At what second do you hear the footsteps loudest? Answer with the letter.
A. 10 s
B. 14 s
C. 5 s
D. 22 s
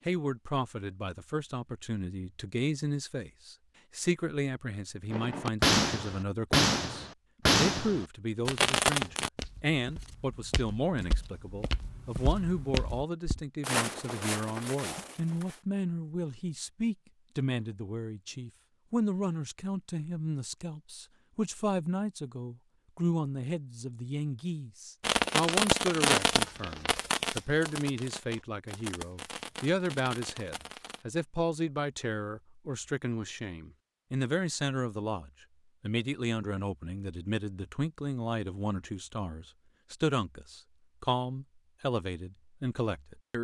B.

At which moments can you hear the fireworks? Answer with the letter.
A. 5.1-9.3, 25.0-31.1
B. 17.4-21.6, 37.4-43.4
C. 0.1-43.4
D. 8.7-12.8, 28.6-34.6
A.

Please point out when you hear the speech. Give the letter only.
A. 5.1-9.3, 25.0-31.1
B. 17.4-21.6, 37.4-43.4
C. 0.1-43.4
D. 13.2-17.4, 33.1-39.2
C.